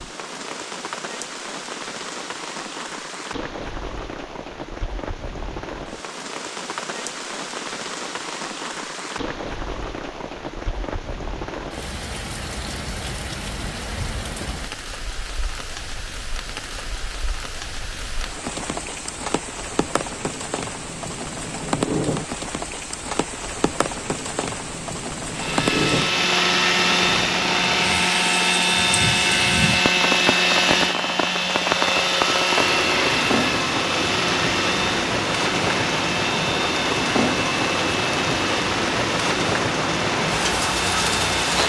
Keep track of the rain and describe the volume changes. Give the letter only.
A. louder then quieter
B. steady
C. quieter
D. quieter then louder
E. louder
E.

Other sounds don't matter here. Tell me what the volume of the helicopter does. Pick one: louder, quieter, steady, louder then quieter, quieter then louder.
quieter.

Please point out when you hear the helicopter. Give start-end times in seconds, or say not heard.
25.3-41.6.